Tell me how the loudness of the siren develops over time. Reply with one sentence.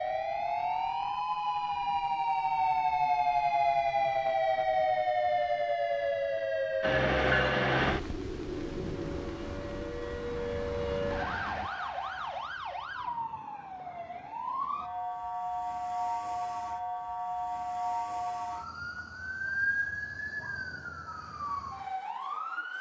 The loudness of the siren goes down.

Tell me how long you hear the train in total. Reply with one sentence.
The train can be heard for 5 seconds in total.